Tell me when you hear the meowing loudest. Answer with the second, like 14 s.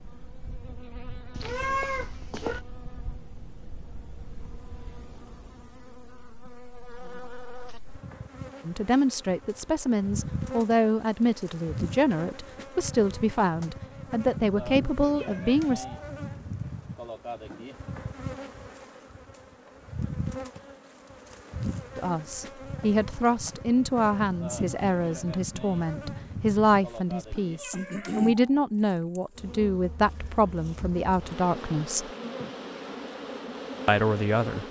2 s.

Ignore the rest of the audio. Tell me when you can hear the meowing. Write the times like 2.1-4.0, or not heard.
1.4-2.6, 15.2-15.9, 27.6-28.4.